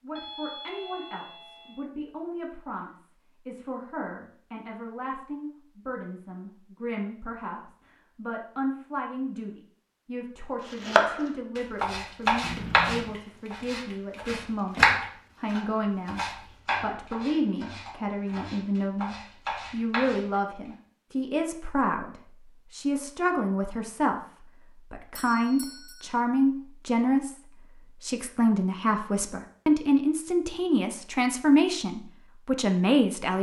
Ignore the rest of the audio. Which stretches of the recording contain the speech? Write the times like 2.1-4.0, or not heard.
0.0-16.2, 16.8-33.3.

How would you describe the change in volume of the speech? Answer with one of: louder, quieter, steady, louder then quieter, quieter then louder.
louder.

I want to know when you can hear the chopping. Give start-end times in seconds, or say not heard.
10.7-20.4.